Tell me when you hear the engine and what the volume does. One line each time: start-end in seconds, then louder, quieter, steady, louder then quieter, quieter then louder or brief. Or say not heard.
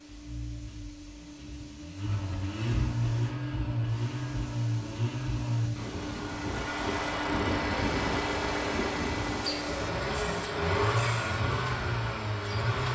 0.0-12.8 louder.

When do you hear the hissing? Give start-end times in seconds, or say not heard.
0.0-9.9.